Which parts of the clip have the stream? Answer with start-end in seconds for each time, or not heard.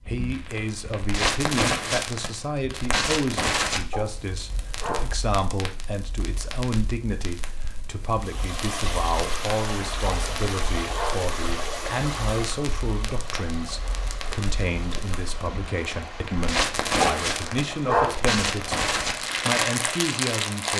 8.2-20.7.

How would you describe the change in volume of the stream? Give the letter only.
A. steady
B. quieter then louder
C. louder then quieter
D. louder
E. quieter
E.